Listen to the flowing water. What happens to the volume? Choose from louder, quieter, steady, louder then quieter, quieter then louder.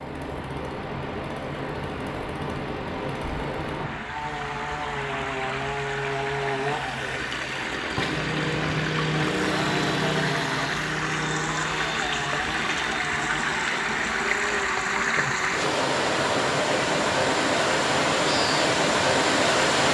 louder.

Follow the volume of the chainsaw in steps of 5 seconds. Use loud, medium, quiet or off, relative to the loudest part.
medium, loud, loud, off.